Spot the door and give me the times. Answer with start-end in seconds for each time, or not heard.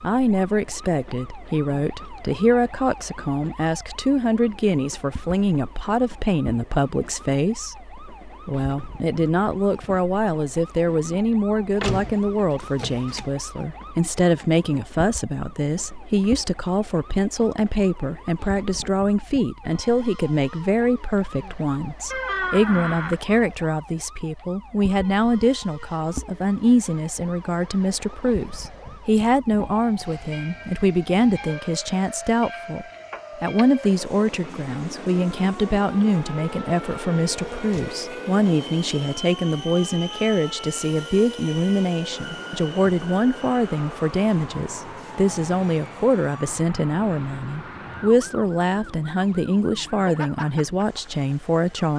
11.8-13.2, 22.1-23.2, 37.5-38.0.